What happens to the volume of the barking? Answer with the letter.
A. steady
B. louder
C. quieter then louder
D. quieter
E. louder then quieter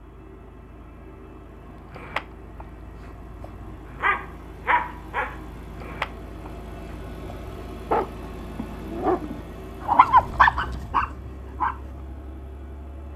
B.